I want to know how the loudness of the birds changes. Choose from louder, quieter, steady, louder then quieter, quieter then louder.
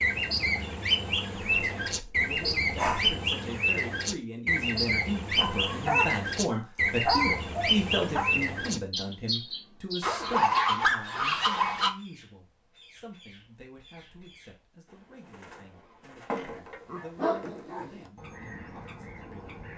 quieter then louder.